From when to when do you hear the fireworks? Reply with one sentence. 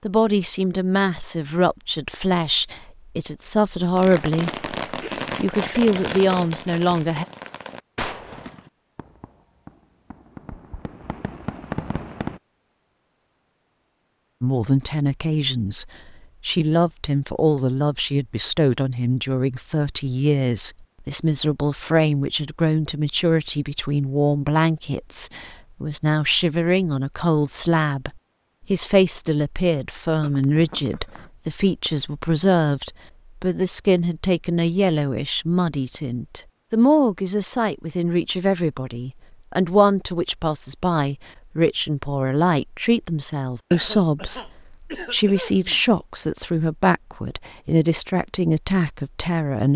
The fireworks can be heard from 4.0 to 12.4 s.